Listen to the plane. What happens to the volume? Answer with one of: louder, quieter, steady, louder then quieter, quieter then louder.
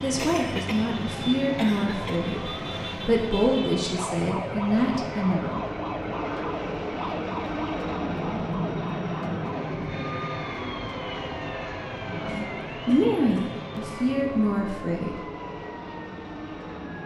louder then quieter.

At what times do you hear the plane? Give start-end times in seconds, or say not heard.
0.0-17.0.